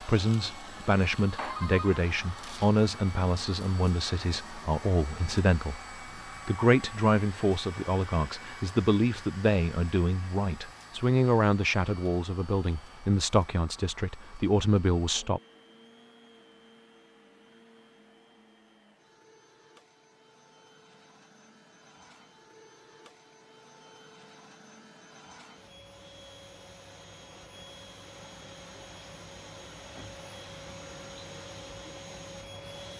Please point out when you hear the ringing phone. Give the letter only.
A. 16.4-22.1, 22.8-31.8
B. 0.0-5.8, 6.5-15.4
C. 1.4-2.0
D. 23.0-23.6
C.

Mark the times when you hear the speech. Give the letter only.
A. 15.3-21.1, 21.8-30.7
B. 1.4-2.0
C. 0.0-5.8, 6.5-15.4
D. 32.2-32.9
C.